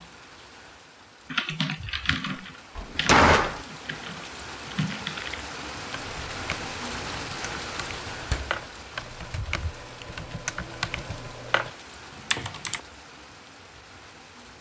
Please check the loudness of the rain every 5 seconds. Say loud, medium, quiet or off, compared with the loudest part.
medium, loud, medium.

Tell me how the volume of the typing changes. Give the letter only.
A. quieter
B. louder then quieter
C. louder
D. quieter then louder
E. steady
D.